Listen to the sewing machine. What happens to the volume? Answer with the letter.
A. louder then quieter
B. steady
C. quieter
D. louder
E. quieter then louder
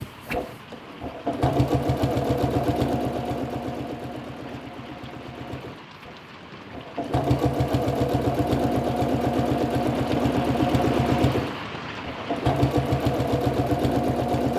E.